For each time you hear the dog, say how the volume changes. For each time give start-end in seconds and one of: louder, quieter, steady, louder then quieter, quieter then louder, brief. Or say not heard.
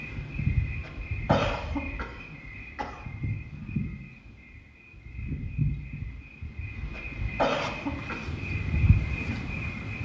not heard.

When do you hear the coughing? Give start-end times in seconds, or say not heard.
0.8-3.0, 7.0-8.2.